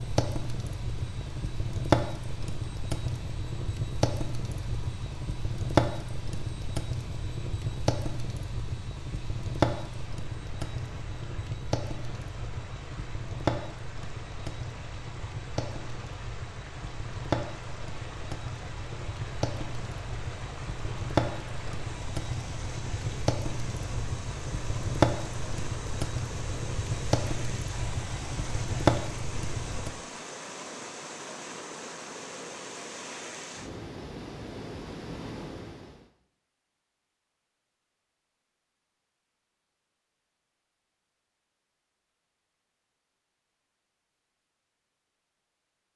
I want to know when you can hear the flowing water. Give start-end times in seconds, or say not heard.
0.0-36.1.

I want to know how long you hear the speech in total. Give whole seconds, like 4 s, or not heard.
not heard.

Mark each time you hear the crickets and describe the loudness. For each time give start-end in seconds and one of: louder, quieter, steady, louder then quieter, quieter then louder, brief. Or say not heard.
not heard.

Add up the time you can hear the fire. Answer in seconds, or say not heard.
30 s.